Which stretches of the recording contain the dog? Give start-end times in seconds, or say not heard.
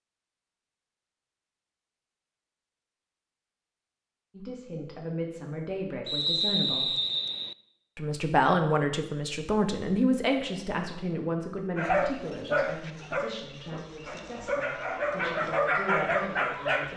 11.8-16.9.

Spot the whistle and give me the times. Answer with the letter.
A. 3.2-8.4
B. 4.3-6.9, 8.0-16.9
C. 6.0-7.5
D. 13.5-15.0
C.